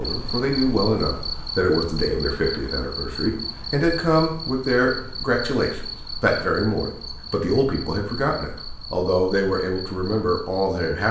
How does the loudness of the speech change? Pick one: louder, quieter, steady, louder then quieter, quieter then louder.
steady.